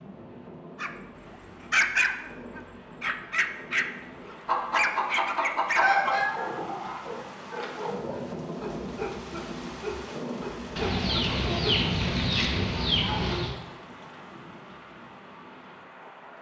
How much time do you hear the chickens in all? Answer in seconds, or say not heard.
5 s.